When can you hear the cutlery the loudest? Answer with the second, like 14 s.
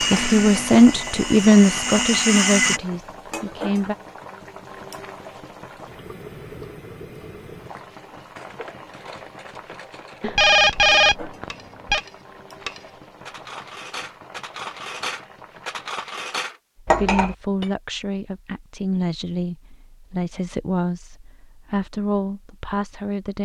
17 s.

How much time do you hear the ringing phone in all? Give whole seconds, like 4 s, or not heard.
2 s.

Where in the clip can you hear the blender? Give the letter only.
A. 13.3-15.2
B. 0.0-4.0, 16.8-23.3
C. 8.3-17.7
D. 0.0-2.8
D.